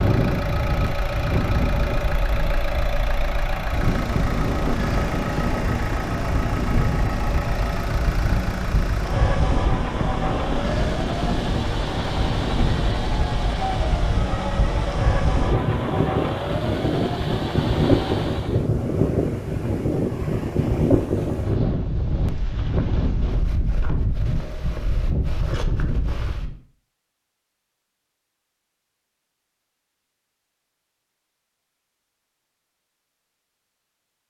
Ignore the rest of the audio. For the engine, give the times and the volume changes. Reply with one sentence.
You can hear the engine from 0.0 to 18.6 s, at a steady volume.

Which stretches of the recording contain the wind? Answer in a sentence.
The wind can be heard from 0.0 to 26.6 s.